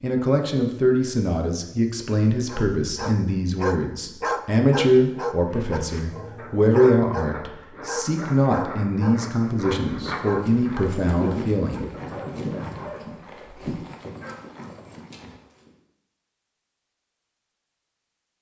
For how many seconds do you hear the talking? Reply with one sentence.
The talking can be heard for 12 seconds in total.